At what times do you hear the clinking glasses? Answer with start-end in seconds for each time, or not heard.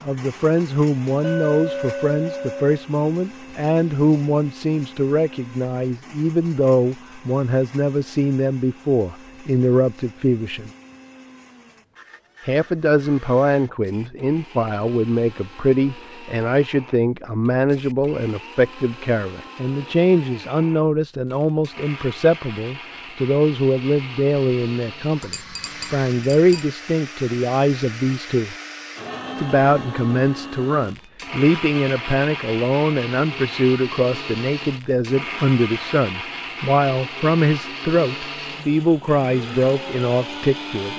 1.2-2.6, 25.2-26.6.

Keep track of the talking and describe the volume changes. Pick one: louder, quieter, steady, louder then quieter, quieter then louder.
steady.